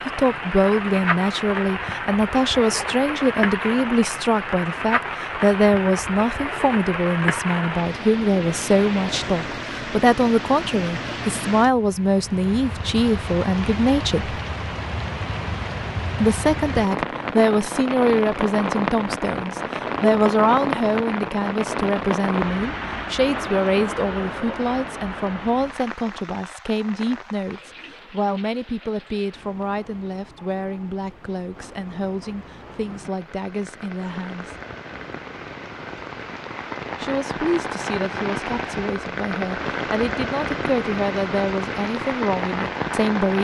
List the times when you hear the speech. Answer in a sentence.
The speech can be heard from 0.1 to 14.4 s, from 16.1 to 34.5 s and from 37.0 to 43.3 s.